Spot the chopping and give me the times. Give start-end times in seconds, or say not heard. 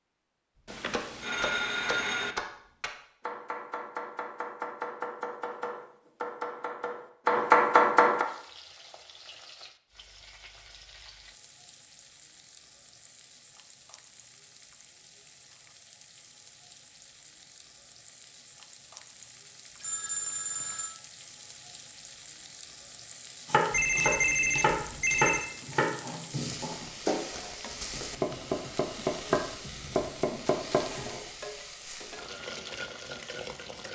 0.9-8.2, 23.4-31.1.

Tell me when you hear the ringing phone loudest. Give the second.
24 s.